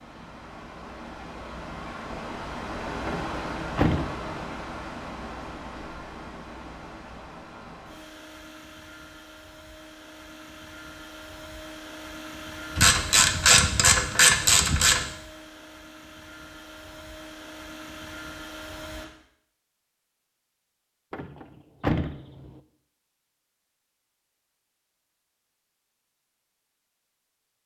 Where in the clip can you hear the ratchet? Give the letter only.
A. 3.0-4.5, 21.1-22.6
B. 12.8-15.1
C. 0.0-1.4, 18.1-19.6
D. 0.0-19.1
B.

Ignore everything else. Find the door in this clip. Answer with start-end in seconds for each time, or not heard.
3.0-4.5, 21.1-22.6.